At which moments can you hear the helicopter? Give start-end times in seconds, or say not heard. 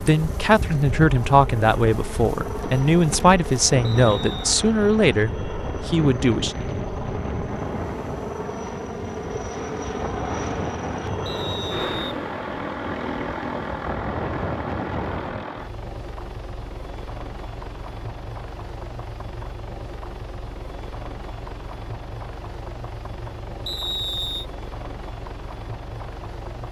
0.0-26.6.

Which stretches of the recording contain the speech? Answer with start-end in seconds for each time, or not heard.
0.0-6.5.